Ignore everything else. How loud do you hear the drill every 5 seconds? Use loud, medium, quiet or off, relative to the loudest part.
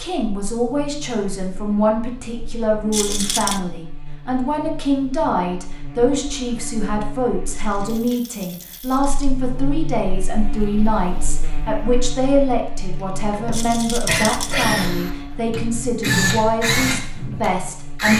off, off, loud, loud.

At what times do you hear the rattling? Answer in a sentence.
The rattling can be heard from 2.9 to 3.6 s, from 7.5 to 9.3 s and from 13.5 to 14.7 s.